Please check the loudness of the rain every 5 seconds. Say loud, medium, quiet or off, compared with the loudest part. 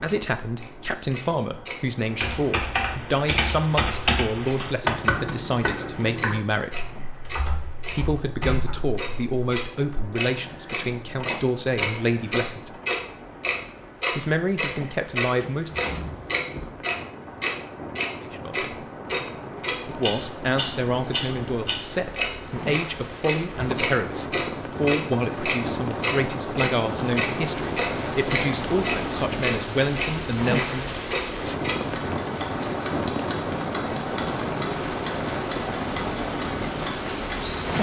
quiet, quiet, quiet, medium, medium, loud, loud, loud.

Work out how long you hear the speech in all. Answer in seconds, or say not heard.
25 s.